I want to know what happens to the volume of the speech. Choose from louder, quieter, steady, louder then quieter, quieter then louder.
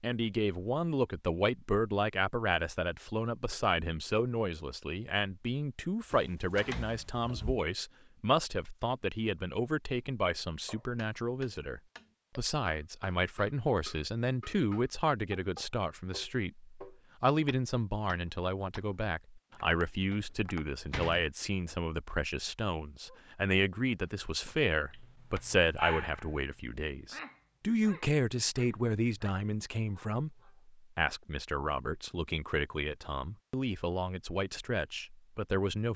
steady.